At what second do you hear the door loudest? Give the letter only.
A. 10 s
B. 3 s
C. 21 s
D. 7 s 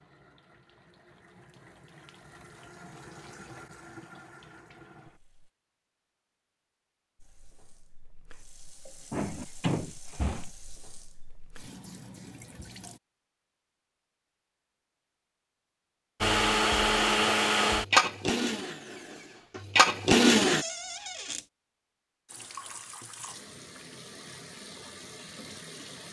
A.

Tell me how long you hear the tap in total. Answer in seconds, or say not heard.
15 s.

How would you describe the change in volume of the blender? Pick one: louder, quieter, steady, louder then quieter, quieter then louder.
quieter then louder.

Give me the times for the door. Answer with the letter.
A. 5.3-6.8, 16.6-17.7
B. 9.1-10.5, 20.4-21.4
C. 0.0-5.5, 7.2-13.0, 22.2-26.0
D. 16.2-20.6
B.